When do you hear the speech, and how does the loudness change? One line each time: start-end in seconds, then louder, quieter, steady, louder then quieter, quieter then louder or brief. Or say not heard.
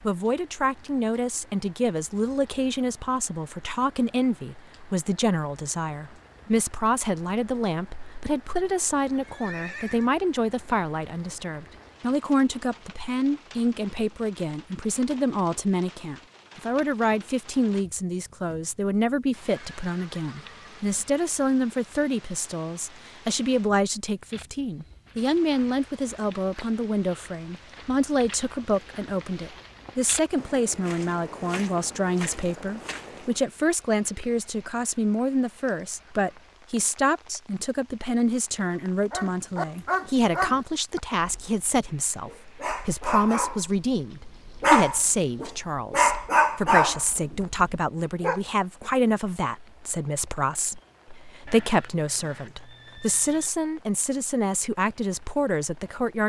0.0-56.2 steady.